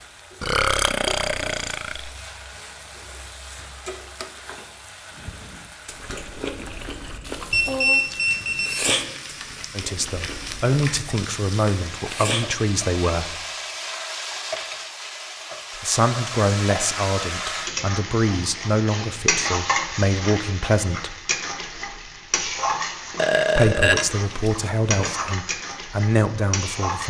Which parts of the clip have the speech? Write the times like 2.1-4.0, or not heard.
9.7-13.3, 15.8-21.2, 23.6-27.0.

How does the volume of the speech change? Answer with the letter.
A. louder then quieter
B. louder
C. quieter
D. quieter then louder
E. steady
E.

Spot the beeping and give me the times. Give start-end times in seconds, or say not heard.
7.5-8.9.